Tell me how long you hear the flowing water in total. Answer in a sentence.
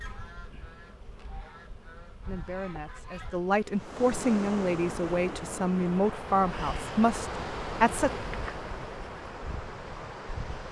The flowing water can be heard for 7 seconds in total.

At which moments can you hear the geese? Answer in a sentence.
The geese can be heard from 0.0 to 3.4 s.